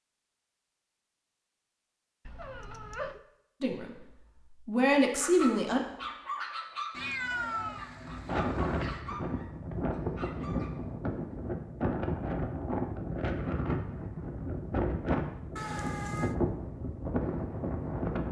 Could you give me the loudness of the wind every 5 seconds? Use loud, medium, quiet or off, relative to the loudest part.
off, loud, loud, loud.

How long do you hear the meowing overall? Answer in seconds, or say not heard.
4 s.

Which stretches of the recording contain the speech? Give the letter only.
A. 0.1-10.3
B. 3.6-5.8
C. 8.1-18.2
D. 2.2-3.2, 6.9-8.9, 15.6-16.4
B.